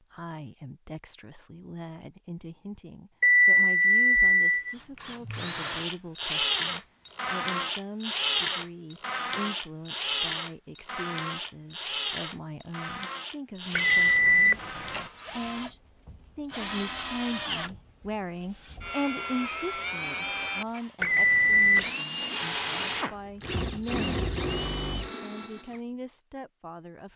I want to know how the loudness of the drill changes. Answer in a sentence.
The volume of the drill goes down, then up.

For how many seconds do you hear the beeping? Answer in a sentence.
You can hear the beeping for 4 seconds altogether.